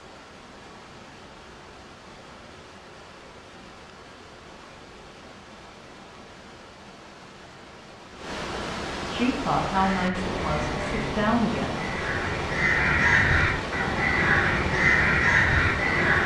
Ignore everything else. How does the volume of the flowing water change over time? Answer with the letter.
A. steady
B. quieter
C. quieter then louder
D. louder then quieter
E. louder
E.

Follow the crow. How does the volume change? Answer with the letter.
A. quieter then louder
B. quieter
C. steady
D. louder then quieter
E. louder
E.